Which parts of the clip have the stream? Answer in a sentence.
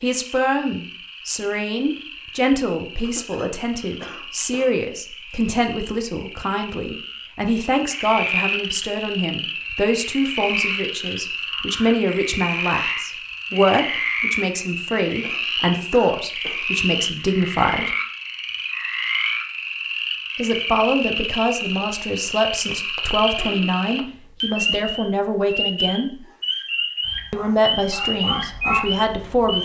You can't hear the stream here.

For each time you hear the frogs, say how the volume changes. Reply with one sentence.
The frogs can be heard from 0.0 to 29.6 s, getting louder.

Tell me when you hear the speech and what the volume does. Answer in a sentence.
You can hear the speech from 0.0 to 17.9 s, at a steady volume; from 20.4 to 26.1 s, at a steady volume; and briefly from 27.3 to 29.6 s.